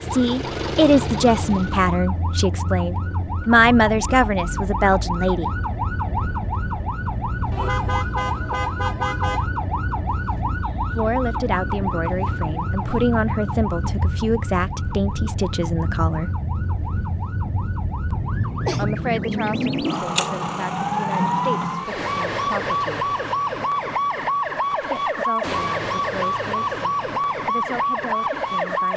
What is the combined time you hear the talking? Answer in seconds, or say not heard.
19 s.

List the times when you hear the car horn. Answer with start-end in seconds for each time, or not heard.
7.5-9.4.